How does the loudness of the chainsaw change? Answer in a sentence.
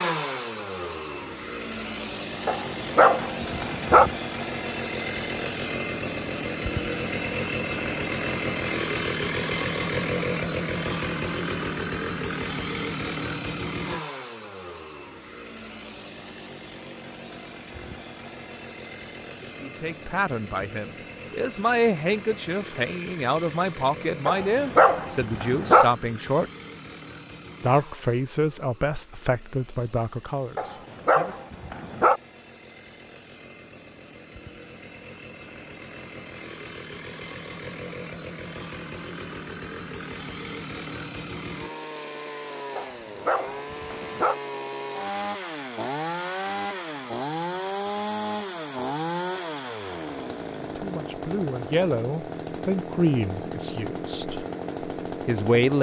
The loudness of the chainsaw goes down, then up.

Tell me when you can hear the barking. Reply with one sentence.
You can hear the barking from 2.5 to 4.1 s, from 24.2 to 25.9 s, from 30.6 to 32.2 s and from 42.8 to 44.4 s.